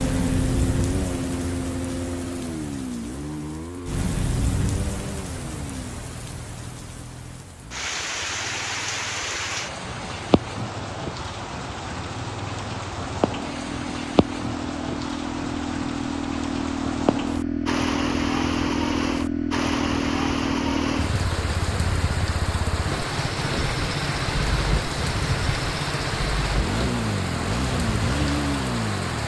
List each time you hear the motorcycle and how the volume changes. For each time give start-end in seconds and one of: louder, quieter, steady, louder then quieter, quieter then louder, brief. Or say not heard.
0.0-29.2 quieter then louder.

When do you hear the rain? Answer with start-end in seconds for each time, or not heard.
0.0-29.2.